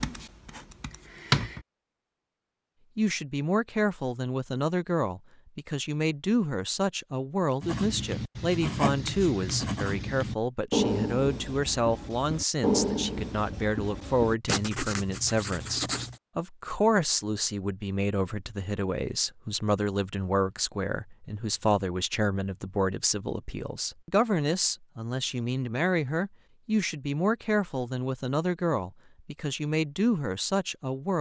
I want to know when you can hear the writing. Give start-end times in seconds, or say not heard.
0.0-1.6, 7.6-16.1.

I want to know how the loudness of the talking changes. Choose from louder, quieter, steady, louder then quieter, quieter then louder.
steady.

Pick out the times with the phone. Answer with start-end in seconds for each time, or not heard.
not heard.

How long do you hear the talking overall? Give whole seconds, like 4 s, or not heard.
28 s.